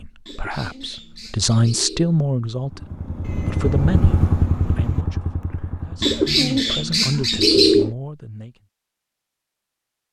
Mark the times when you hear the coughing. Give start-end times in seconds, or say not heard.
not heard.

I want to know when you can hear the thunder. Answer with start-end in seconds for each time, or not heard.
3.2-5.0.